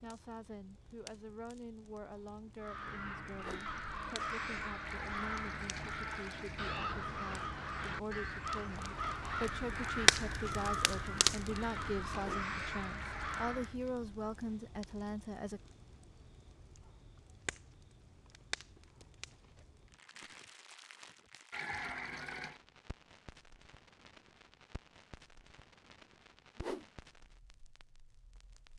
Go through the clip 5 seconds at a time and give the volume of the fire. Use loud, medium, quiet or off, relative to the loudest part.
quiet, quiet, loud, quiet, quiet, quiet.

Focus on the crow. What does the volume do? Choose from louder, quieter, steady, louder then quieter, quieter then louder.
steady.